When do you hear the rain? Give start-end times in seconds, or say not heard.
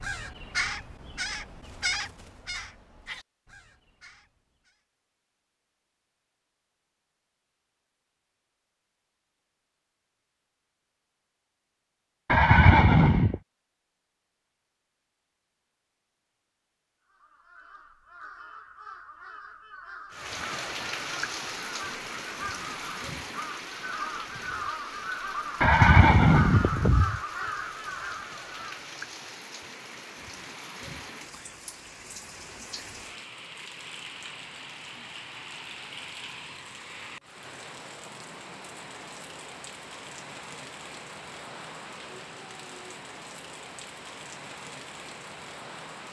20.1-46.0.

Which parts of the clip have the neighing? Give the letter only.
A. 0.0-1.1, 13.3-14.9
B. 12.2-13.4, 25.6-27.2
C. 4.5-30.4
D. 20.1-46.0
B.